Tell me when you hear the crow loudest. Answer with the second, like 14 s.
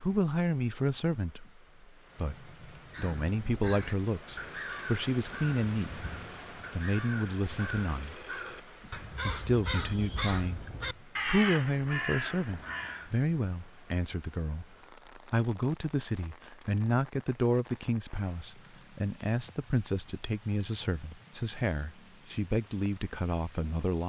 11 s.